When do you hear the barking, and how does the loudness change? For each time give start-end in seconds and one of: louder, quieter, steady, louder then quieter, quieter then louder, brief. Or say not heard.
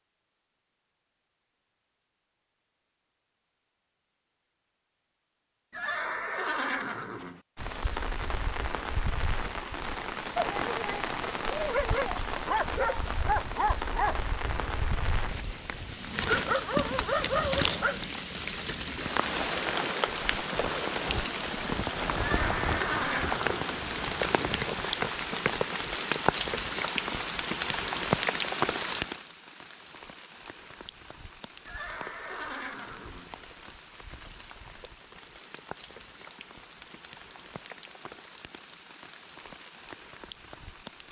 10.3-18.1 quieter then louder.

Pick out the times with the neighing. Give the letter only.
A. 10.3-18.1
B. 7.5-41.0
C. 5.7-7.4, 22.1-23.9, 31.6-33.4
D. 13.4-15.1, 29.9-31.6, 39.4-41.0
C.